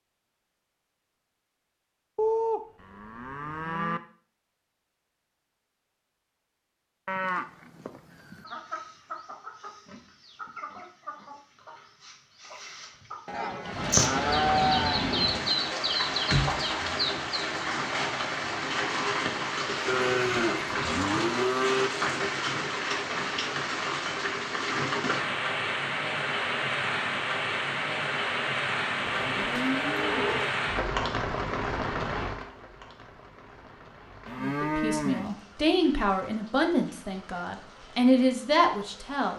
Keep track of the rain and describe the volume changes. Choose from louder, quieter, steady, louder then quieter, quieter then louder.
quieter.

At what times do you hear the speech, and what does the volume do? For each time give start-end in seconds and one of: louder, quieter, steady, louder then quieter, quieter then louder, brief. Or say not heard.
34.4-39.3 louder.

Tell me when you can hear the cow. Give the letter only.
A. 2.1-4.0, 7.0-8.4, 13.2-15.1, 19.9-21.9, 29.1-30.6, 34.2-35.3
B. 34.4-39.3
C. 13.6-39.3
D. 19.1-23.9
A.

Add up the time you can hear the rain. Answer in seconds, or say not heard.
26 s.